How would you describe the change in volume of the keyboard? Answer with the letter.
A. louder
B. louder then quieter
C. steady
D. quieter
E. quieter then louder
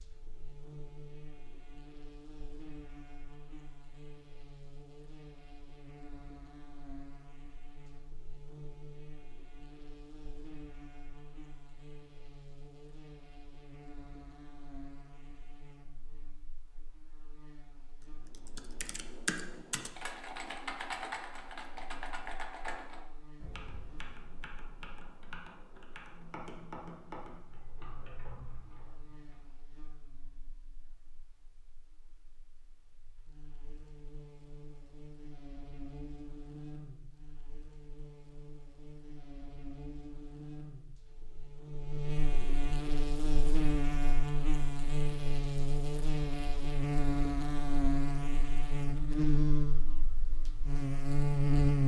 D.